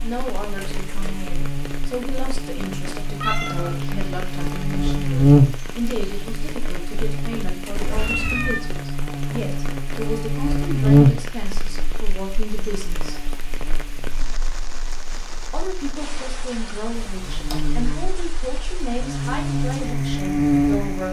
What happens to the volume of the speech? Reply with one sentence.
The volume of the speech stays about the same.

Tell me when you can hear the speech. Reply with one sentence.
You can hear the speech from 0.0 to 13.2 s and from 15.5 to 21.0 s.